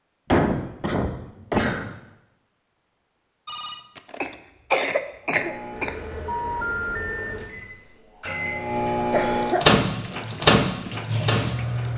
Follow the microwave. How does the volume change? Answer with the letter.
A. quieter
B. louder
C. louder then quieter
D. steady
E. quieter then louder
B.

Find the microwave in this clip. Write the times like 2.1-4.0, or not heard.
5.3-11.9.